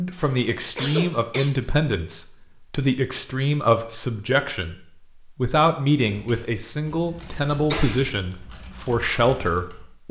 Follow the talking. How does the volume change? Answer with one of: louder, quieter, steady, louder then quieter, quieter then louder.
steady.